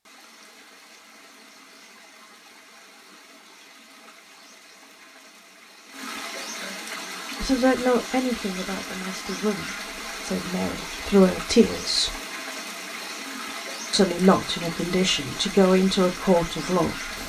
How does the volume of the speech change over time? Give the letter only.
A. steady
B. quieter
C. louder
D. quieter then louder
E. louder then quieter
D.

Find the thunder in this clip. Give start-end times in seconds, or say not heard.
not heard.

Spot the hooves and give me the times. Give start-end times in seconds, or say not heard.
not heard.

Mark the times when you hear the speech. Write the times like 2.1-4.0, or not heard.
7.4-12.1, 13.9-16.9.